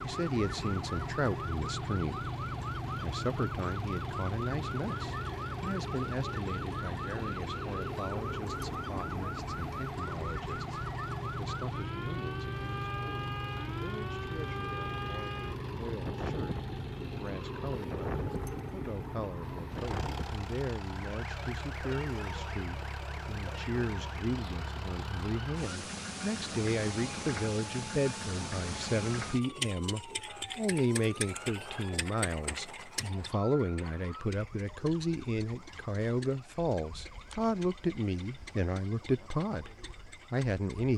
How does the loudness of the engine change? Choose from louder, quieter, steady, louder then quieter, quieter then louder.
quieter.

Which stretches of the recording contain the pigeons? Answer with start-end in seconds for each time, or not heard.
not heard.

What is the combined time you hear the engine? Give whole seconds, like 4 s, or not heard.
41 s.